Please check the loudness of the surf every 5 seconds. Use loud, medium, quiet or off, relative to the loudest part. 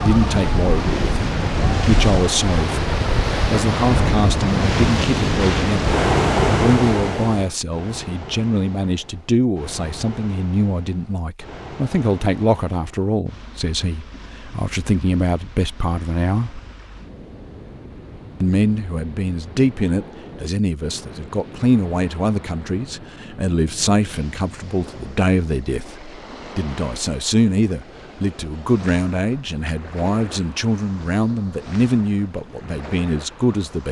loud, loud, quiet, quiet, quiet, quiet, quiet.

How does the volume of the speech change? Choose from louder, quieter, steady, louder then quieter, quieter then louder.
steady.